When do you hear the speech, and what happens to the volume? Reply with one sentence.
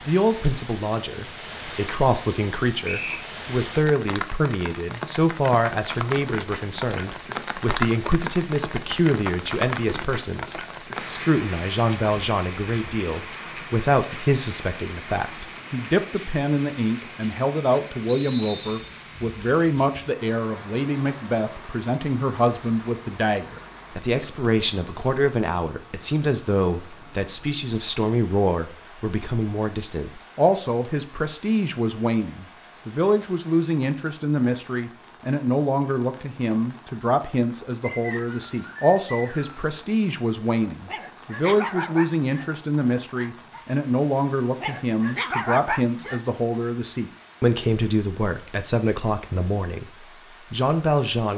You can hear the speech from 0.1 to 51.3 s, at a steady volume.